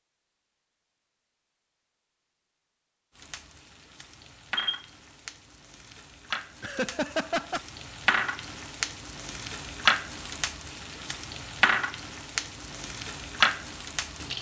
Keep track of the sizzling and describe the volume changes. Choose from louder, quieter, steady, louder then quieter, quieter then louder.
louder.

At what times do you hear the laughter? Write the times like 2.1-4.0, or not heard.
6.6-7.6.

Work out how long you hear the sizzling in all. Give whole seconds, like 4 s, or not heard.
11 s.